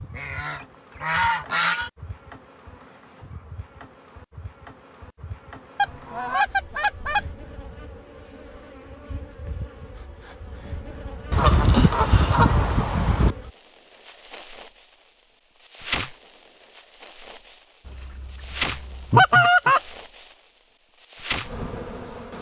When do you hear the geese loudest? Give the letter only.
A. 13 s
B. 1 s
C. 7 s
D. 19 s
D.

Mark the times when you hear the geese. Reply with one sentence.
The geese can be heard from 0.1 to 1.9 s, from 5.8 to 7.3 s, from 11.3 to 13.3 s and from 17.9 to 19.8 s.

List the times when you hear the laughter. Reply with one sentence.
You can't hear the laughter here.